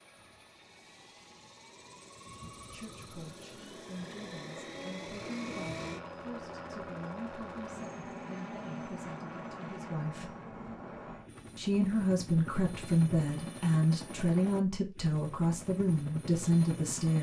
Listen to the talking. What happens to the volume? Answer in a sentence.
The loudness of the talking goes up.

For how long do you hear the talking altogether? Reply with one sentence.
You can hear the talking for 13 seconds altogether.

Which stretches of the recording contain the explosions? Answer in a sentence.
The explosions can't be heard in this clip.